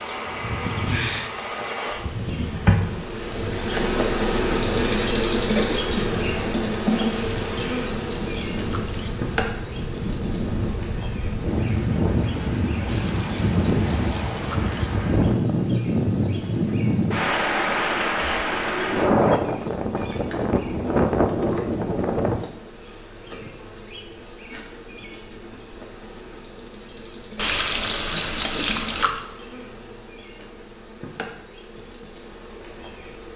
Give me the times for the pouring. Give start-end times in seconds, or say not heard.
7.0-9.1, 12.8-14.9, 27.4-29.2.